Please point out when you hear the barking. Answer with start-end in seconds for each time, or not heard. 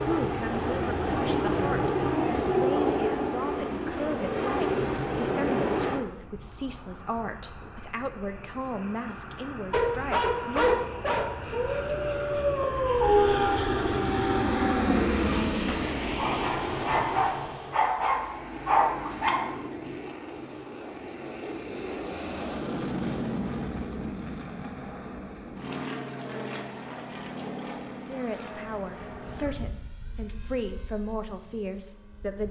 9.7-19.5.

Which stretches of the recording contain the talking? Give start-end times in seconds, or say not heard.
0.0-10.8, 27.9-32.4.